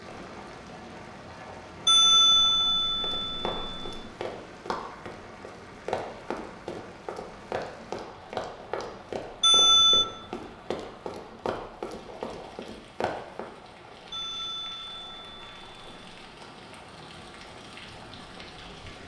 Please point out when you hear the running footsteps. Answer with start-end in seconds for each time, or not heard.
3.0-13.4.